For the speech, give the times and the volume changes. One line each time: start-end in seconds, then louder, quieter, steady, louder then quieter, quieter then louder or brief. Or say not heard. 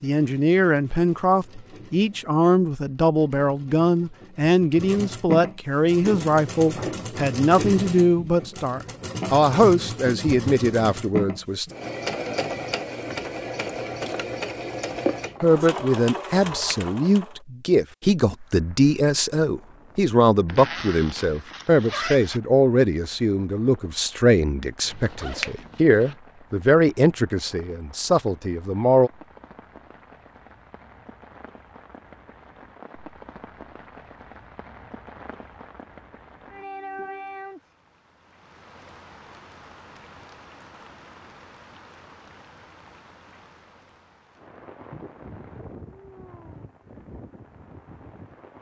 0.0-11.7 steady
15.4-29.1 steady.